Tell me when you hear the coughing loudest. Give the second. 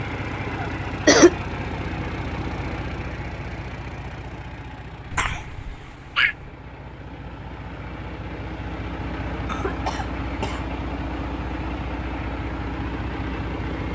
1 s.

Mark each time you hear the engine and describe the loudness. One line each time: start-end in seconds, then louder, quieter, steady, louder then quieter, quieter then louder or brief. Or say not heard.
0.0-13.9 quieter then louder.